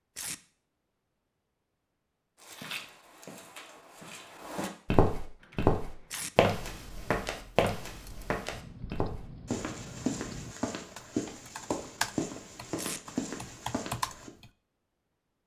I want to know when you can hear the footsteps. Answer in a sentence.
You can hear the footsteps from 2.4 to 14.3 s.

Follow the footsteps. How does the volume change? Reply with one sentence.
The loudness of the footsteps goes up, then down.